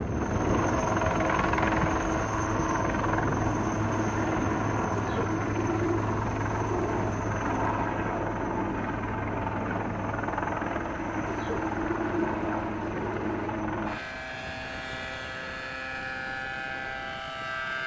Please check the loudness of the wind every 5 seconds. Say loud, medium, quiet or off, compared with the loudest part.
loud, medium, medium, quiet.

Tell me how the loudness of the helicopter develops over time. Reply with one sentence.
The volume of the helicopter goes down.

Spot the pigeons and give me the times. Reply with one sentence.
You can hear the pigeons from 5.0 to 7.2 s and from 11.2 to 13.7 s.